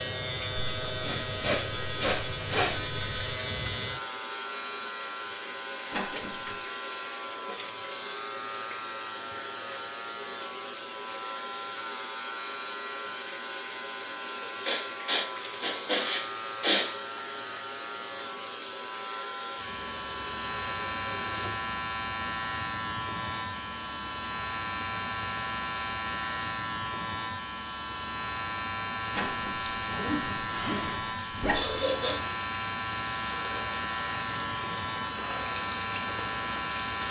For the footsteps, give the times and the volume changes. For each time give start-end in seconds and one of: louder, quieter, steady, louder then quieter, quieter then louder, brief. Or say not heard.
not heard.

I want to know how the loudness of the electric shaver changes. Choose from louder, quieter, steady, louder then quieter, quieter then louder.
steady.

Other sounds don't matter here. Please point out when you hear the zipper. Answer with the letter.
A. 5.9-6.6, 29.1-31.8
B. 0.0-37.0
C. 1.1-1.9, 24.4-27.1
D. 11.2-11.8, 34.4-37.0
A.